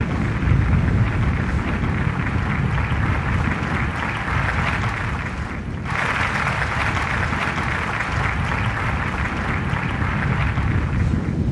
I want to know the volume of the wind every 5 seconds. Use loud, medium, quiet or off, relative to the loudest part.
loud, medium, loud.